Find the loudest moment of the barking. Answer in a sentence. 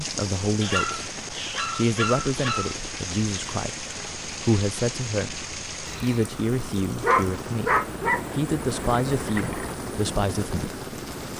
The loudest moment of the barking is at 7 seconds.